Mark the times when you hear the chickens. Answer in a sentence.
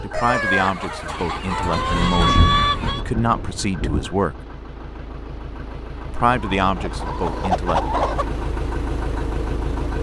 The chickens can be heard from 0.1 to 3.0 s and from 6.3 to 8.2 s.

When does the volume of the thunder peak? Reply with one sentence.
The volume of the thunder peaks at 2 seconds.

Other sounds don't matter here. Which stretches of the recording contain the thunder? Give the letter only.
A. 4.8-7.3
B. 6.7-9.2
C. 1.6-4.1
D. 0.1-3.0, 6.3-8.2
C.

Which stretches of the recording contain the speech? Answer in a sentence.
You can hear the speech from 0.0 to 4.4 s and from 6.1 to 7.8 s.